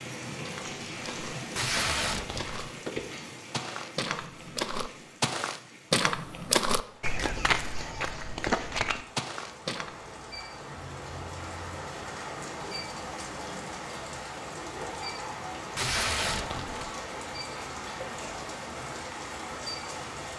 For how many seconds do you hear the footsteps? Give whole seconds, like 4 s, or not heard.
10 s.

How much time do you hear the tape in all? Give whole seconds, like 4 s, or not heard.
2 s.